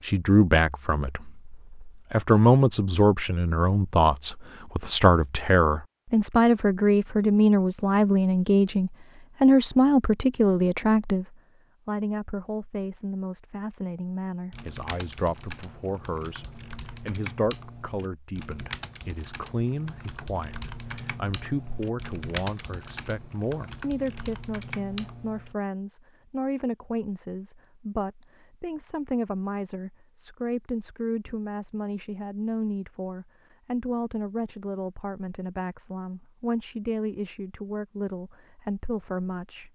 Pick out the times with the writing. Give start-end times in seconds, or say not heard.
not heard.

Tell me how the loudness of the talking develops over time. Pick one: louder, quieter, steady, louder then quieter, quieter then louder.
quieter.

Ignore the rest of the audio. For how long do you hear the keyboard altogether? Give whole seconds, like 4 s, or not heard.
11 s.